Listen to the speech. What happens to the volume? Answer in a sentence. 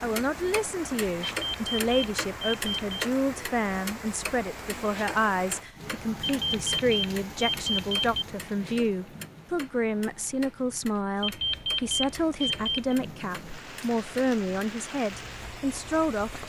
The loudness of the speech stays about the same.